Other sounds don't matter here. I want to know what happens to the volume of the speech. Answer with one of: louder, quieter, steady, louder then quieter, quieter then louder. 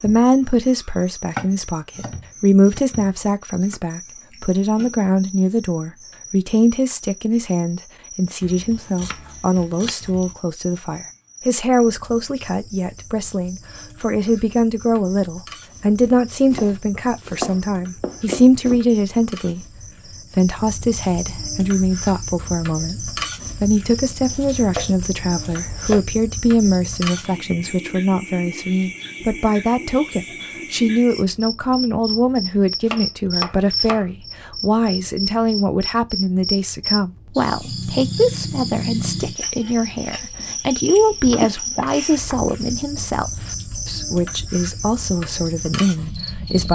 steady.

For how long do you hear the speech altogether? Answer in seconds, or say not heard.
46 s.